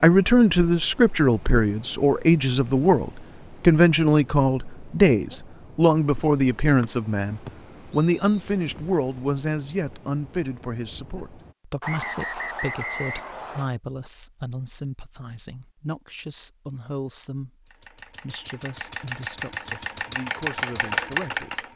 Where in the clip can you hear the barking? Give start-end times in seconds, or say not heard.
not heard.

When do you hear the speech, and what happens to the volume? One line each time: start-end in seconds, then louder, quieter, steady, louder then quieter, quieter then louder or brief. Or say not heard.
0.0-21.6 quieter.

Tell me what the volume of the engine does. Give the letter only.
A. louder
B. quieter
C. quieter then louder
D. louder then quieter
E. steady
A.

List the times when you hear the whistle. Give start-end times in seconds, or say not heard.
6.8-8.4, 11.8-13.7.